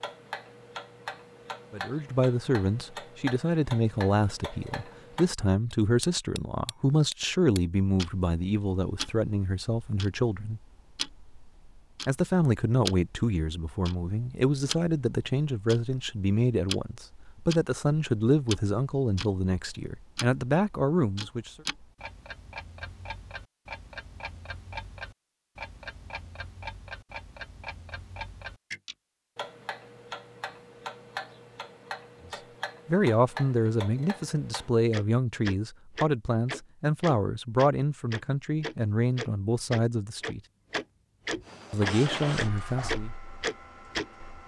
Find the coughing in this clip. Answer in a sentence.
The coughing can't be heard in this clip.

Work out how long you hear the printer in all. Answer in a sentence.
You can hear the printer for 3 seconds altogether.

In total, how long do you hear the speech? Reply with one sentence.
You can hear the speech for 27 seconds altogether.